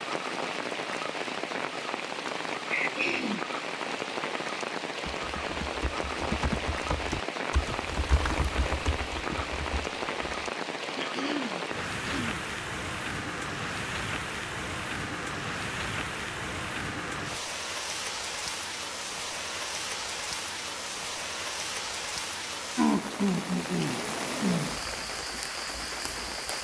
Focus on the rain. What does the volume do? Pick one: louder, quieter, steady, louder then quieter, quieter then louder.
steady.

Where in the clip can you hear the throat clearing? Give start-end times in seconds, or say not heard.
2.7-3.5, 10.9-12.4, 22.8-24.8.